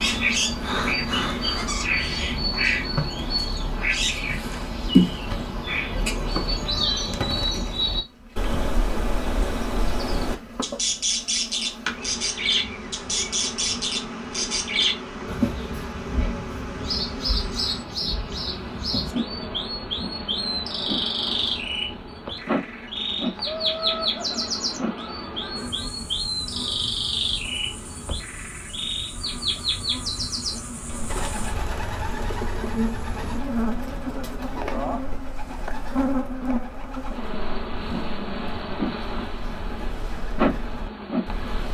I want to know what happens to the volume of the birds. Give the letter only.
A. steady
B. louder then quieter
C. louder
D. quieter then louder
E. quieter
E.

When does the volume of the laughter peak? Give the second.
24 s.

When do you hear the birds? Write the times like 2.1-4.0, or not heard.
0.0-41.7.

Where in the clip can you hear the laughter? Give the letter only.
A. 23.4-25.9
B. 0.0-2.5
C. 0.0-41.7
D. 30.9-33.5
A.